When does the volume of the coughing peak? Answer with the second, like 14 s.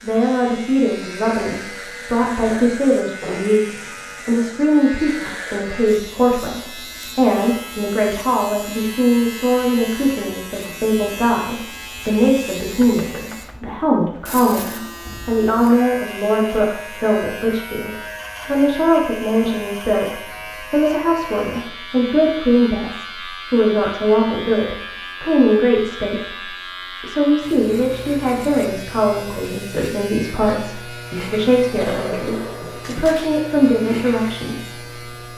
32 s.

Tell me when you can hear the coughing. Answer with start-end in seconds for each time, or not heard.
2.5-3.5, 31.8-33.0.